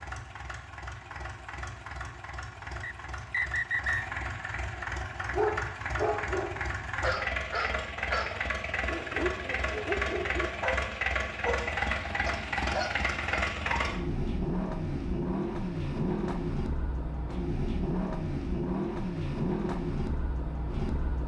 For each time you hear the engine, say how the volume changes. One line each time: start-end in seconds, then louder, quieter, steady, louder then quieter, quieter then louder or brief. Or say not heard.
0.0-21.2 louder.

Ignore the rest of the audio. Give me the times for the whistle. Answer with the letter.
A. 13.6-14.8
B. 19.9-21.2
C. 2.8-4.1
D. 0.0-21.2
C.